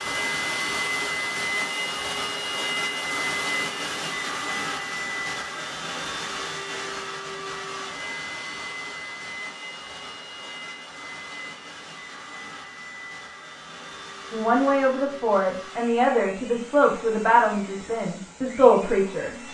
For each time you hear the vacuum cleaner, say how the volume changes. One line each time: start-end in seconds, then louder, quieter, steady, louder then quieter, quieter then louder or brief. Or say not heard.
0.0-19.4 quieter.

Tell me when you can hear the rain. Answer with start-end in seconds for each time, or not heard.
not heard.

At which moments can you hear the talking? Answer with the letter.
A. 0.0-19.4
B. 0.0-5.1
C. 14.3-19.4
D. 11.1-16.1
C.